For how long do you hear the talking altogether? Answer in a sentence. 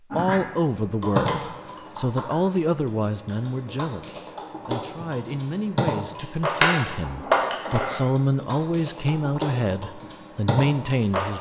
The talking can be heard for 11 seconds in total.